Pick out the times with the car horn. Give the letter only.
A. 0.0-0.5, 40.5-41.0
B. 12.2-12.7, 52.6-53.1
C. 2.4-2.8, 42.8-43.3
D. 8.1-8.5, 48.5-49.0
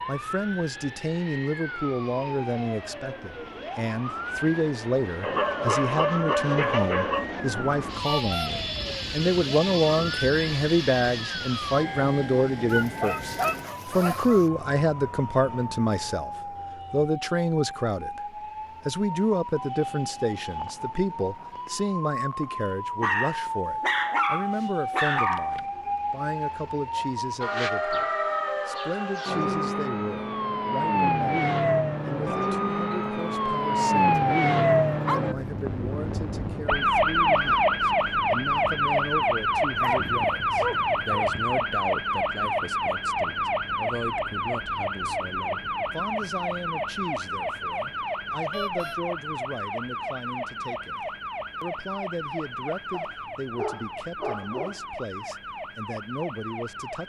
D.